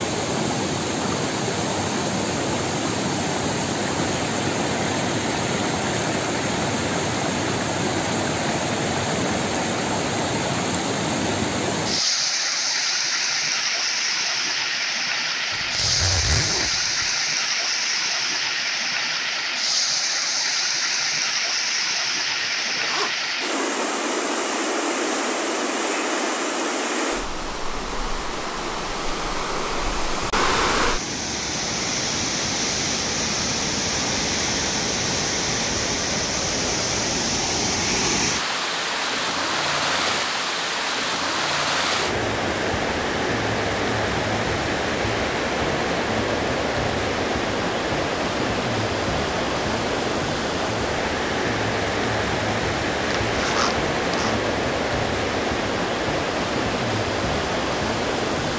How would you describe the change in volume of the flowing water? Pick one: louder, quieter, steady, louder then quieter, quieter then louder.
steady.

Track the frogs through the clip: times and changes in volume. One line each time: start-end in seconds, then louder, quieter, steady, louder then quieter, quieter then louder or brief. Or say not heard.
not heard.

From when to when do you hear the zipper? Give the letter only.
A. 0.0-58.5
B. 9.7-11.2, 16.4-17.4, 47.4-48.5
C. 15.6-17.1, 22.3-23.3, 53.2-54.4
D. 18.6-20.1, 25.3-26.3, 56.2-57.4
C.